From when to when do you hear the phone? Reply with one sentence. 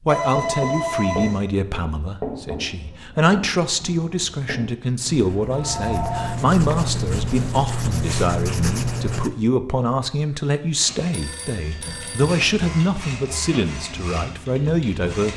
You can hear the phone from 0.1 to 1.4 s, from 5.5 to 6.3 s and from 11.1 to 12.4 s.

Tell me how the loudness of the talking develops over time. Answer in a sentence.
The loudness of the talking stays about the same.